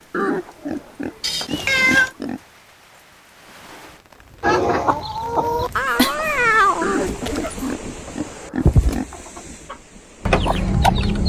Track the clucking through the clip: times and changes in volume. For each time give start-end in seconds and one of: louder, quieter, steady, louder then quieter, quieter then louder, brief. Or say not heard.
4.4-11.2 quieter then louder.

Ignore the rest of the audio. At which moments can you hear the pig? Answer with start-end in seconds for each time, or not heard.
0.1-2.4, 6.8-9.1.